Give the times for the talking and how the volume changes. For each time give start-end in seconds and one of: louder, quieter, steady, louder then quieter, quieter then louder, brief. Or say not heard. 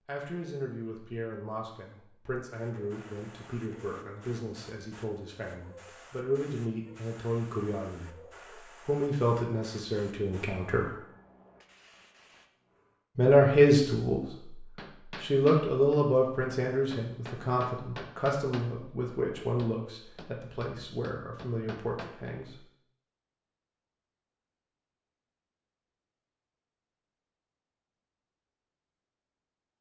0.1-10.9 louder
13.2-14.6 brief
15.2-22.6 quieter.